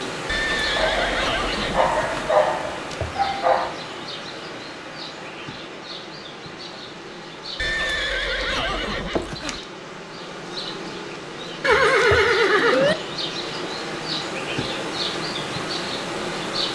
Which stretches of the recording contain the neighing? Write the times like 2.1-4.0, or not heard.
0.2-2.3, 7.5-9.6, 11.6-12.9.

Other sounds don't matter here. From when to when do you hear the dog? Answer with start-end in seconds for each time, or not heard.
0.8-3.7.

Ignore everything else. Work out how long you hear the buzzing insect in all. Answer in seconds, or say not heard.
17 s.